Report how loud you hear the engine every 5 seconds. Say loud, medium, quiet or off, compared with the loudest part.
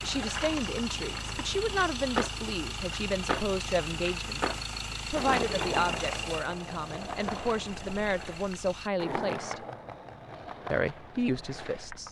loud, loud, off.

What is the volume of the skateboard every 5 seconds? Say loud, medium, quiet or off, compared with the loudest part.
loud, loud, medium.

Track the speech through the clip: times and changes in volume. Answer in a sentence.
You can hear the speech from 0.0 to 9.7 s, at a steady volume; and briefly from 10.7 to 12.0 s.